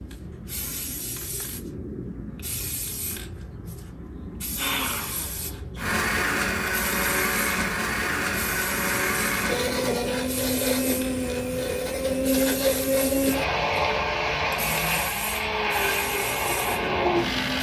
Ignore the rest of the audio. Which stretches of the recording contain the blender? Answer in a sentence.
The blender can be heard from 4.5 to 17.5 s.